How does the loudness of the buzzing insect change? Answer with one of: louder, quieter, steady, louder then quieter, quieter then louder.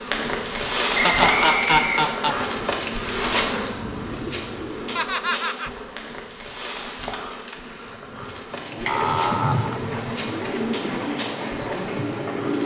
quieter.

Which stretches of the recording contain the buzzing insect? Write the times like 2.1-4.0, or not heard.
0.0-12.6.